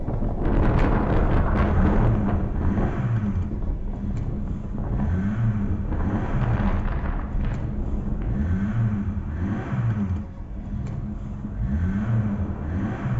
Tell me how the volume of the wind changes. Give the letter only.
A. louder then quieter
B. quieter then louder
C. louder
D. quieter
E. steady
D.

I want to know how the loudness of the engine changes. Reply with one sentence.
The volume of the engine stays about the same.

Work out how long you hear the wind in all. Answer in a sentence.
The wind can be heard for 13 seconds in total.